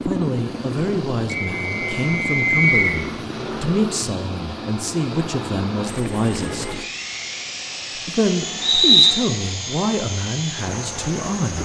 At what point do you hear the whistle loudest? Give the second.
9 s.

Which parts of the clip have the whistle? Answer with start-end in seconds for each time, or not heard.
1.3-3.0, 8.6-9.2.